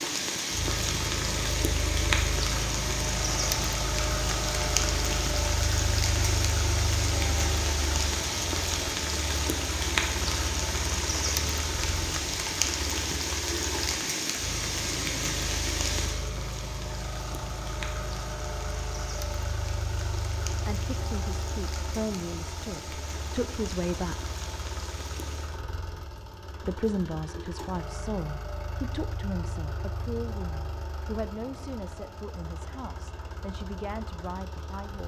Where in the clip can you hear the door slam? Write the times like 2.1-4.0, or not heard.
not heard.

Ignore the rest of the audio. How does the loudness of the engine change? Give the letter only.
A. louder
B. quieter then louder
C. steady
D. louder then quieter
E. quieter
E.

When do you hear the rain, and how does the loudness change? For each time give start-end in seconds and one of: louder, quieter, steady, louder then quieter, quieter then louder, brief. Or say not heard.
0.0-25.6 quieter.